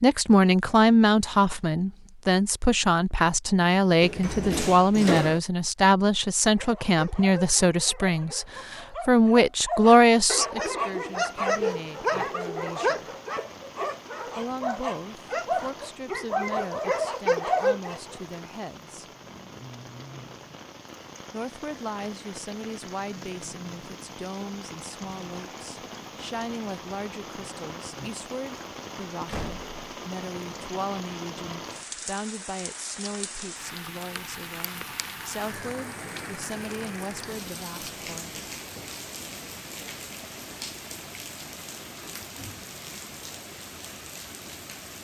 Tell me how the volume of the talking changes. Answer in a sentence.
The volume of the talking goes down.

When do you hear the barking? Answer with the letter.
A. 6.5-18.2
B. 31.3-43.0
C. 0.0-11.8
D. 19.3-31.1
A.